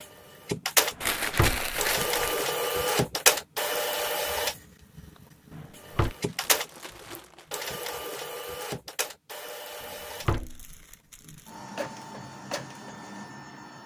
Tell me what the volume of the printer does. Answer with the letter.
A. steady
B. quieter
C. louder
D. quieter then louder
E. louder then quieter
B.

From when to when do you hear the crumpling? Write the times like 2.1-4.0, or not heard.
1.0-2.5, 6.0-7.5, 10.2-11.6.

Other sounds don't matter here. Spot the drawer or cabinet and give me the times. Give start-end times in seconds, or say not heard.
0.9-1.7, 5.5-6.2, 9.8-10.8.